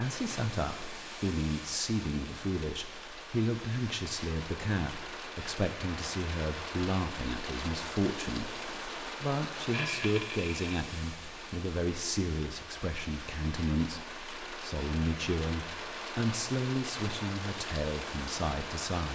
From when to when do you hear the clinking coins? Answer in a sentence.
You can hear the clinking coins from 9.7 to 10.8 s.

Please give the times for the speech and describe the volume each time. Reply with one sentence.
You can hear the speech from 0.0 to 19.1 s, at a steady volume.